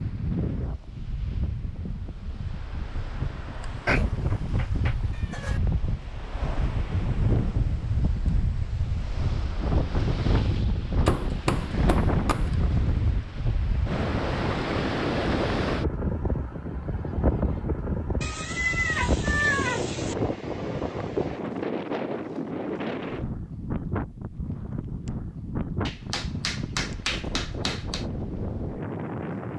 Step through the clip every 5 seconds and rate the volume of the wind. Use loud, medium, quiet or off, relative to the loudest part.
medium, loud, loud, loud, loud, medium.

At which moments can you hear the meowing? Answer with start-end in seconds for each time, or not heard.
3.9-5.6, 18.2-20.1.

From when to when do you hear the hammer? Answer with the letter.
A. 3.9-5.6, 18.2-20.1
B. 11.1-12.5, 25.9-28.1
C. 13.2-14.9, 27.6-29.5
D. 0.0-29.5
B.